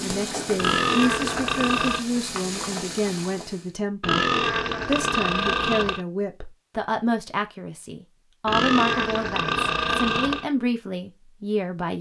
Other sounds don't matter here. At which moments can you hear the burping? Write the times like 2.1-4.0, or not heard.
0.6-2.0, 4.0-6.0, 8.4-10.4.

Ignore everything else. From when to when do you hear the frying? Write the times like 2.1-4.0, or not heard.
0.0-3.8.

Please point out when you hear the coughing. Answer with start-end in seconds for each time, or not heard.
not heard.